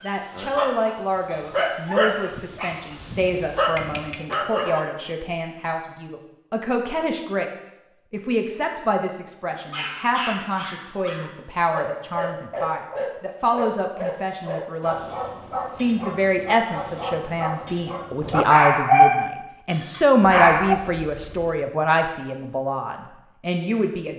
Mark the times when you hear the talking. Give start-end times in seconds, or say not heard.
0.0-24.1.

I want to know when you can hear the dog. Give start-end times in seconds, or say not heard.
0.0-4.8, 9.4-20.8.